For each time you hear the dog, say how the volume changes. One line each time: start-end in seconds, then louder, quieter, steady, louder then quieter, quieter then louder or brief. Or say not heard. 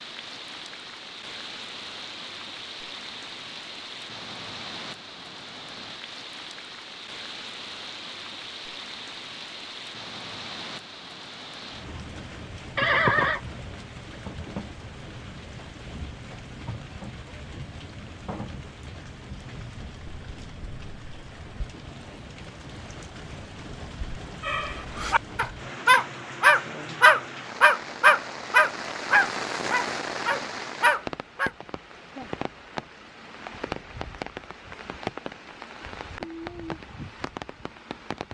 24.4-31.5 louder then quieter.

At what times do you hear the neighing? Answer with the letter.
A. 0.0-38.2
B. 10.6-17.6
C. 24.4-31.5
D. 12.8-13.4
D.